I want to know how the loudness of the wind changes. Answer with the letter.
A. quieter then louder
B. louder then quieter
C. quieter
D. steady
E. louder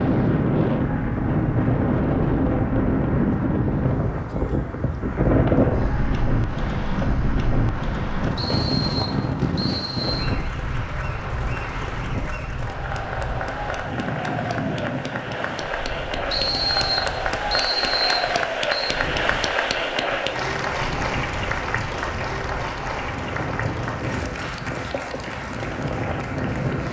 A.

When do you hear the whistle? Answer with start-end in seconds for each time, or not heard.
8.3-10.2, 16.3-18.9.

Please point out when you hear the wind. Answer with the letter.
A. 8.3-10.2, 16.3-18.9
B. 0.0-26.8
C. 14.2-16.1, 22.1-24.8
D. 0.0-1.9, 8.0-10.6
B.